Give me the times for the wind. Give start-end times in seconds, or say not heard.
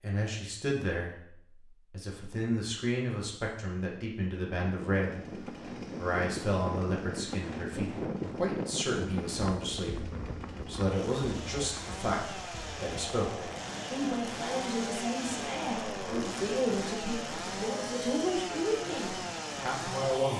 4.5-20.1.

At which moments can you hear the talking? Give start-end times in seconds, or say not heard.
0.0-1.1, 1.9-5.2, 6.0-20.3.